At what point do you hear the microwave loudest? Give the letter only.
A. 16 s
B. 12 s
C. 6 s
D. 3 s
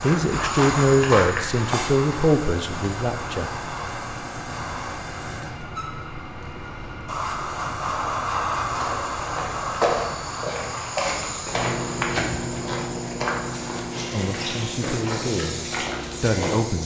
B.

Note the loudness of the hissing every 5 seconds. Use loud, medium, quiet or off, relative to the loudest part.
loud, loud, medium, medium.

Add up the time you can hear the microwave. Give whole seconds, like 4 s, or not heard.
5 s.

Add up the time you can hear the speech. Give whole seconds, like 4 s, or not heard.
6 s.